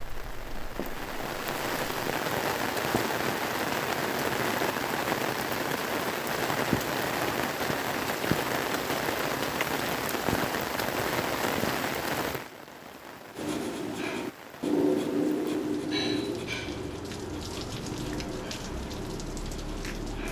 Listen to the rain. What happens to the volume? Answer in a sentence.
The loudness of the rain goes down.